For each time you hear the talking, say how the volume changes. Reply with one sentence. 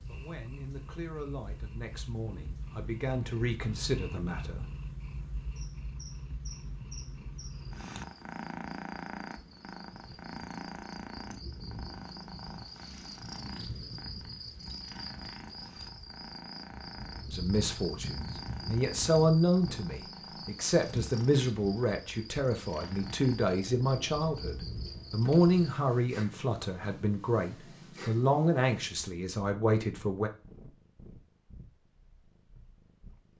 The talking can be heard from 0.1 to 4.7 s, getting louder; and from 17.2 to 30.3 s, at a steady volume.